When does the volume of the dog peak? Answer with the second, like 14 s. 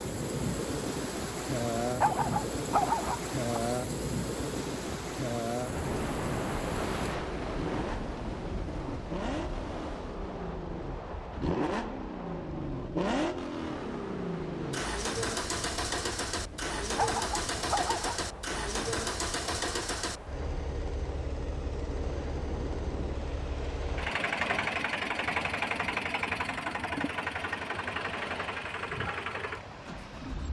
3 s.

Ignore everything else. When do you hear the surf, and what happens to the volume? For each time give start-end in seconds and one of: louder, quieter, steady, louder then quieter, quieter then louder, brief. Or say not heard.
0.0-30.4 quieter.